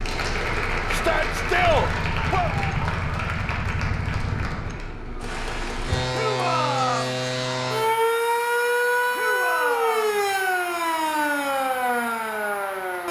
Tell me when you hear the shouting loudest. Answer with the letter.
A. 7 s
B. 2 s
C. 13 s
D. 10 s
B.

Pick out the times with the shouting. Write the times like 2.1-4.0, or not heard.
0.9-2.5, 6.1-7.2, 9.1-10.2.